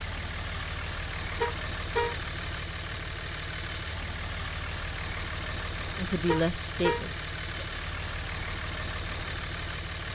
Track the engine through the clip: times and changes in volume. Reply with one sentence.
You can hear the engine from 0.0 to 10.1 s, at a steady volume.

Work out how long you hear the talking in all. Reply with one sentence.
You can hear the talking for 2 seconds altogether.